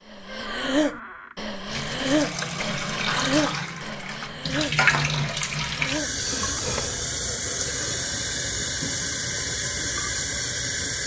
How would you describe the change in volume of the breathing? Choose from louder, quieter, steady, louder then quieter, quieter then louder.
quieter.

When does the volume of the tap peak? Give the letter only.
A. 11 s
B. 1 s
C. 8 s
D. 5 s
D.